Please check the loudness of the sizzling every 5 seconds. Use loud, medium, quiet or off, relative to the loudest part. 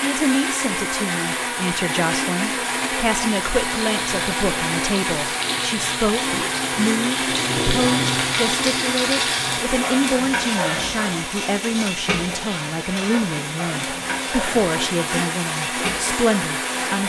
medium, loud, loud, medium.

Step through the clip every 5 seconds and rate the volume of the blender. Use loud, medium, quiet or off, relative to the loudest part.
loud, loud, medium, loud.